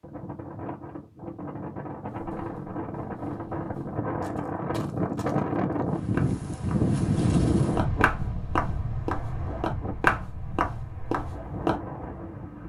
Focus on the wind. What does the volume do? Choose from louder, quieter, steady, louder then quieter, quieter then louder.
louder then quieter.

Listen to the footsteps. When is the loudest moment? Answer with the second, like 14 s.
10 s.